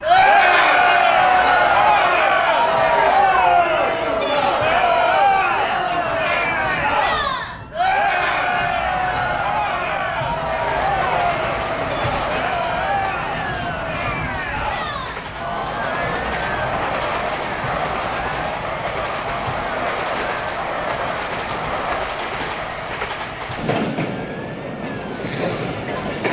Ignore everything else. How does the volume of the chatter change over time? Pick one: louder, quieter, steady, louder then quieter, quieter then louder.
quieter.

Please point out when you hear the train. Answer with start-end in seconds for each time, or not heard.
10.4-26.2.